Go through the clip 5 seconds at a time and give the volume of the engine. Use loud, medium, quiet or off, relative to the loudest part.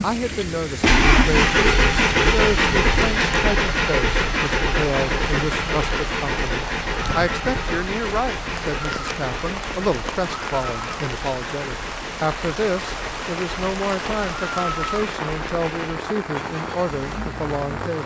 loud, medium, quiet, quiet.